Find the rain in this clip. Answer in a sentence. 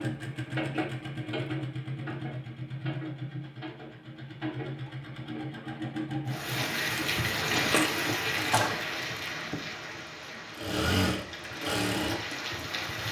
You can hear the rain from 6.2 to 13.0 s.